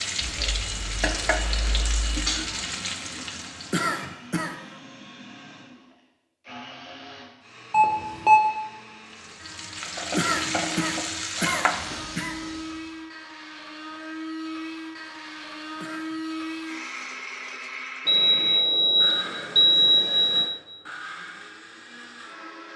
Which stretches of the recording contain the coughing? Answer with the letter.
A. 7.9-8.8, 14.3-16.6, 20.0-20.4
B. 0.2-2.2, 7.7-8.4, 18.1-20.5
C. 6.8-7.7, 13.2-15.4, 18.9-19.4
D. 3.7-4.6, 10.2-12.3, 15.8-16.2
D.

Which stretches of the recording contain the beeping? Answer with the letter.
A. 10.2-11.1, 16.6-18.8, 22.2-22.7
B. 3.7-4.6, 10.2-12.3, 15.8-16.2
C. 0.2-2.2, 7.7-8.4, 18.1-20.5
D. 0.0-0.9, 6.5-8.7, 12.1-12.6
C.